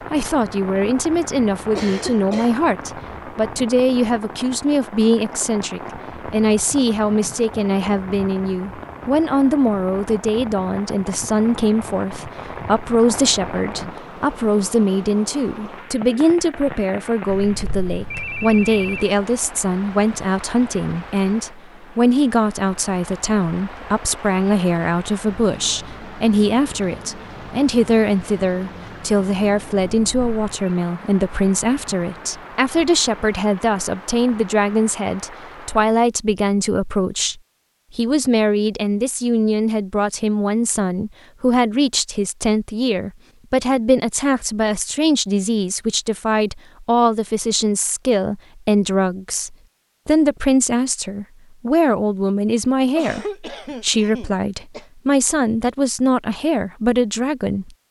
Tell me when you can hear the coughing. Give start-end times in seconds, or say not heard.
1.8-2.5, 53.0-54.9.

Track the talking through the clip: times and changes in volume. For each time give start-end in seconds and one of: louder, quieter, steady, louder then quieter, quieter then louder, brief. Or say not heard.
0.1-57.8 steady.